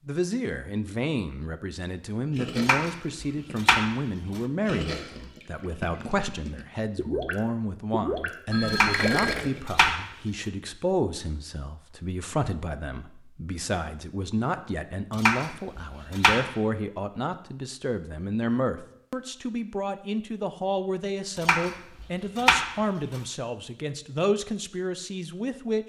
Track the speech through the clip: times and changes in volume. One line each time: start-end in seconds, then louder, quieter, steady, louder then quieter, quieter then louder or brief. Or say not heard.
0.1-25.8 steady.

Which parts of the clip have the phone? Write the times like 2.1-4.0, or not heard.
8.4-9.4.